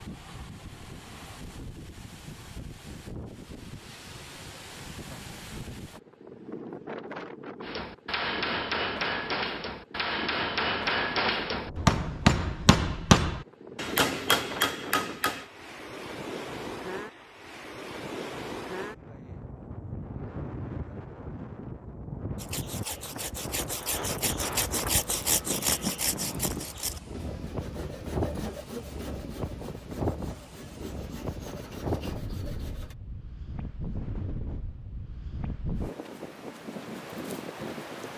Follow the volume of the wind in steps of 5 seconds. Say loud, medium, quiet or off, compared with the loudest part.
medium, loud, loud, loud, loud, loud, loud, loud.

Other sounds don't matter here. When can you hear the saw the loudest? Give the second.
25 s.